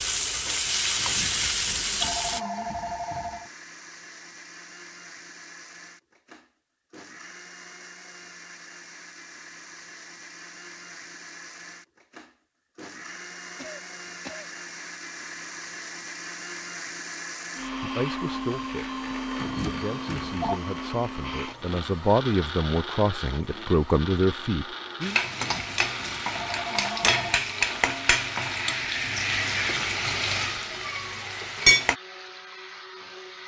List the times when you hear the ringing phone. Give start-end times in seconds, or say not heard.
0.9-3.5, 19.4-20.6, 25.3-27.4.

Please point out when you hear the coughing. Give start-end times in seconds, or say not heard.
13.6-14.5.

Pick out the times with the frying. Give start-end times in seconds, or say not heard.
0.0-2.4, 25.0-31.9.